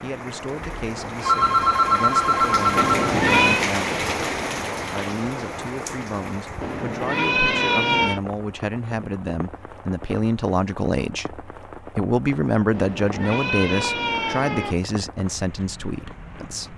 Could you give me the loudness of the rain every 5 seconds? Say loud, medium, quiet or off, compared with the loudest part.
loud, medium, quiet, quiet.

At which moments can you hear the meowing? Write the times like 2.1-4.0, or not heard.
2.8-3.6, 6.6-8.2, 12.7-14.8.